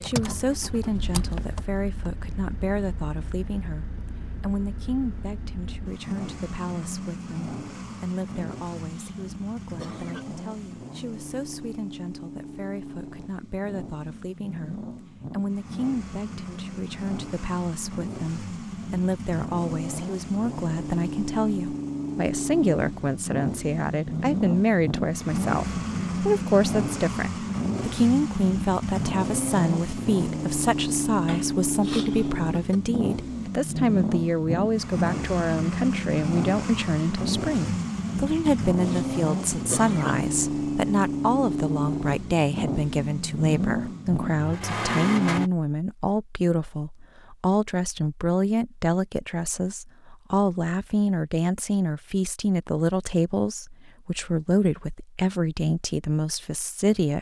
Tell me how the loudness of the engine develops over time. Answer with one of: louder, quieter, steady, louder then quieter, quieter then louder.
louder.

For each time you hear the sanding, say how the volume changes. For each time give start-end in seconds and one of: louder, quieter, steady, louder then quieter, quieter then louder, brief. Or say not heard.
not heard.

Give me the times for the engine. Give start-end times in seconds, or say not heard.
0.0-45.5.